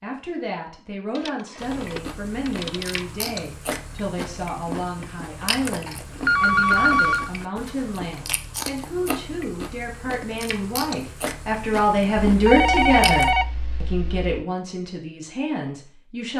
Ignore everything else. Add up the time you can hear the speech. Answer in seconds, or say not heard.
16 s.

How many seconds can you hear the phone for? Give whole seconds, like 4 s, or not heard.
5 s.